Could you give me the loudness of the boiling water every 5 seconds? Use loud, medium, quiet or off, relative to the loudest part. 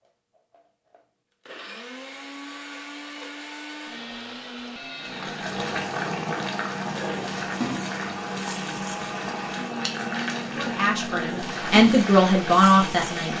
off, loud, loud.